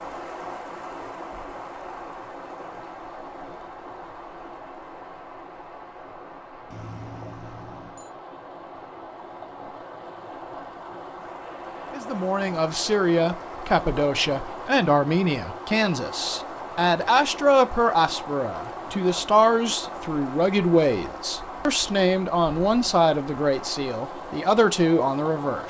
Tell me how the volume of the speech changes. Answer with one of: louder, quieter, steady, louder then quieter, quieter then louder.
steady.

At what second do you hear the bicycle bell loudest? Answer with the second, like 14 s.
7 s.